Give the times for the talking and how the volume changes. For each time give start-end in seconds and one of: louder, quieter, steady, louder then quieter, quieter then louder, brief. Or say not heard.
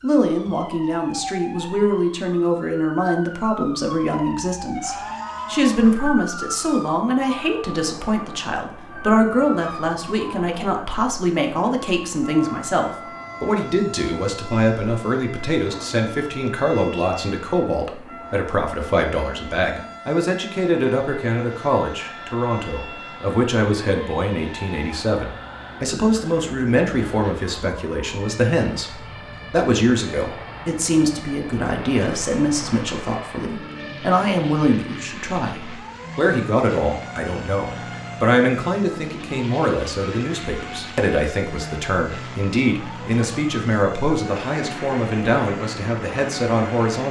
0.0-47.0 steady.